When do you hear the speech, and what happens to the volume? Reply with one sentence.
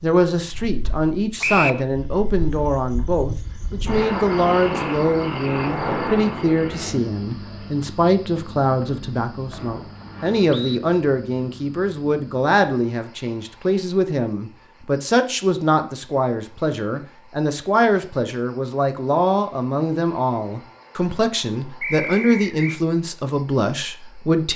The speech can be heard from 0.0 to 24.5 s, at a steady volume.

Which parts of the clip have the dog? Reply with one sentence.
The dog can't be heard in this clip.